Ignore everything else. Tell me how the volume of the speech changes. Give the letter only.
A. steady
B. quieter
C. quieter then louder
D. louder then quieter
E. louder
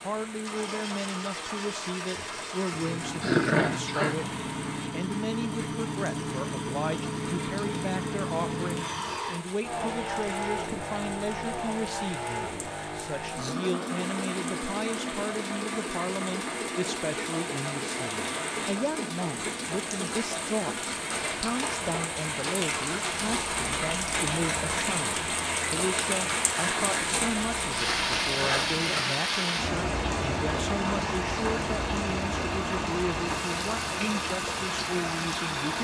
A.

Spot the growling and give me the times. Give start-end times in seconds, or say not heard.
3.2-4.2.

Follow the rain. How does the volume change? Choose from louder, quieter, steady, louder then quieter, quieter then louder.
louder.